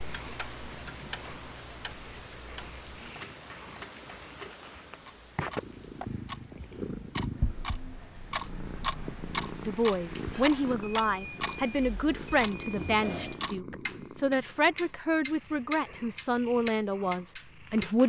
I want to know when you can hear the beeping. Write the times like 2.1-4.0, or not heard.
10.8-13.4.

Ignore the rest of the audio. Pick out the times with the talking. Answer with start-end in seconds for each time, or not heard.
9.7-18.0.